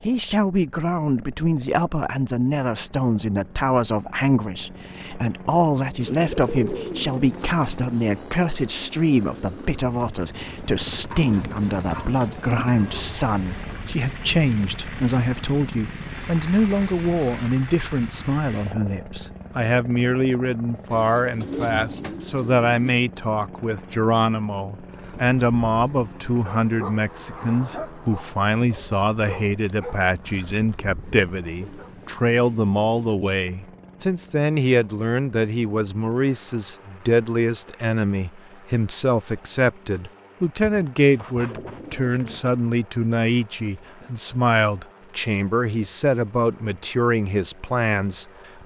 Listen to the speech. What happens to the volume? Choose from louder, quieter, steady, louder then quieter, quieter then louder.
steady.